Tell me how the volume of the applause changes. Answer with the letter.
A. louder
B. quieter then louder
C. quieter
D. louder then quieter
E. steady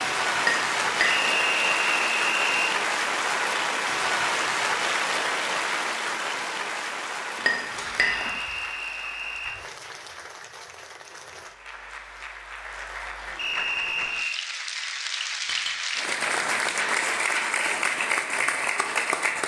B.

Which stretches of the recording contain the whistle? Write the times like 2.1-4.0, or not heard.
1.1-2.8, 8.0-9.6, 13.3-14.4.